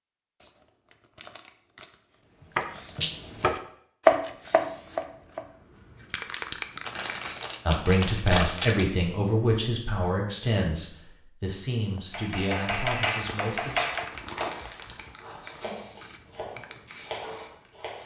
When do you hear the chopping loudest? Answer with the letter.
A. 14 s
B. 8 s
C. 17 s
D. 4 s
D.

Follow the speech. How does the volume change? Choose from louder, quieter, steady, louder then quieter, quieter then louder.
quieter.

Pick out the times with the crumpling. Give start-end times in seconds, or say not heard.
0.4-1.9, 2.5-3.1, 6.8-8.8, 12.7-15.2.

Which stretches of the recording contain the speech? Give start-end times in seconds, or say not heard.
7.7-13.9.